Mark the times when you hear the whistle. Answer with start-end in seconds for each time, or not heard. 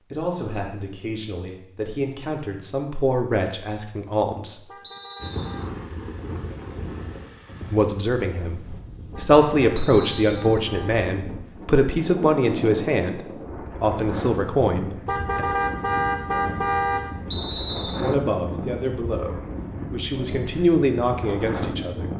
4.8-5.7, 9.8-10.6, 17.3-18.1.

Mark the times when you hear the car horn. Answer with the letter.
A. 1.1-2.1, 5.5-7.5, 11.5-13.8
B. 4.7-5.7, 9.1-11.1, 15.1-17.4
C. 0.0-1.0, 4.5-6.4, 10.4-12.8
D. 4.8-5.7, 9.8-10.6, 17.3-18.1
B.